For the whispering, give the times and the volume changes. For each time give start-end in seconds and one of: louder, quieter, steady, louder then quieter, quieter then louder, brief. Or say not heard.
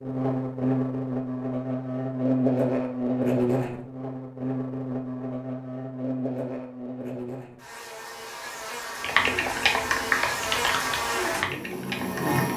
not heard.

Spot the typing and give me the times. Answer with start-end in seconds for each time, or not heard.
9.0-12.4.